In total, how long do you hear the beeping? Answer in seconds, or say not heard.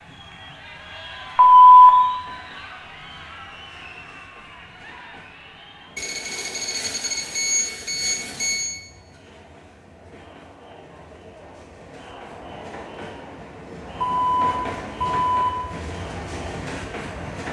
5 s.